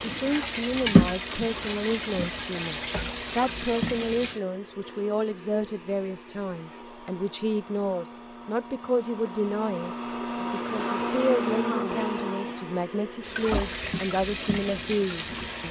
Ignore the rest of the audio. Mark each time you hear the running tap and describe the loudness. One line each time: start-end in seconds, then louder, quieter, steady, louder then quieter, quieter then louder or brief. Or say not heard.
0.0-4.4 quieter
13.2-15.6 brief.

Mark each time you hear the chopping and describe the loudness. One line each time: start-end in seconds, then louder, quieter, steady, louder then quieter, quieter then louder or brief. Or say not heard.
not heard.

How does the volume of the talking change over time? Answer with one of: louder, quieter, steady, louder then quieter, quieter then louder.
steady.